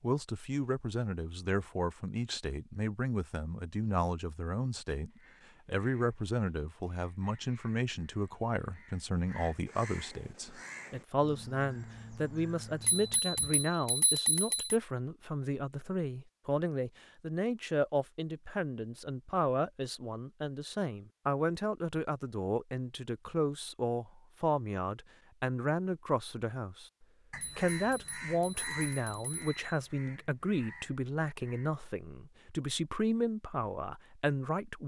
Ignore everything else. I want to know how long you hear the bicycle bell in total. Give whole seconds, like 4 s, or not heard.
4 s.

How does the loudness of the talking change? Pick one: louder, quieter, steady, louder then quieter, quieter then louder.
steady.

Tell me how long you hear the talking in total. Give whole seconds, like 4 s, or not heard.
35 s.